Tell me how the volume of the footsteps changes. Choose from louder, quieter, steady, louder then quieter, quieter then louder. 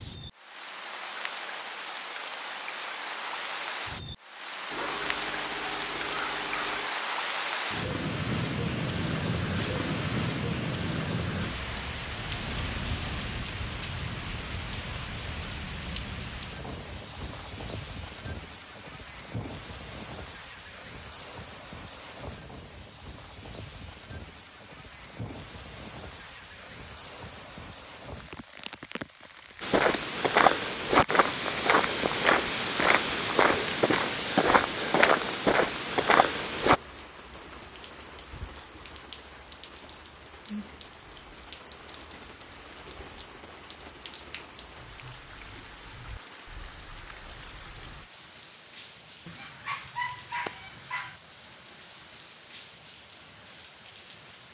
steady.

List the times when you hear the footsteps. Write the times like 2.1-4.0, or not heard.
29.6-36.8.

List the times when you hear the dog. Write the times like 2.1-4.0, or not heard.
4.7-7.0, 49.2-51.2.